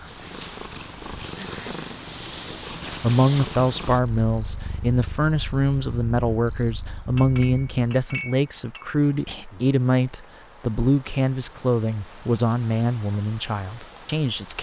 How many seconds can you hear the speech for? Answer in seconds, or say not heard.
12 s.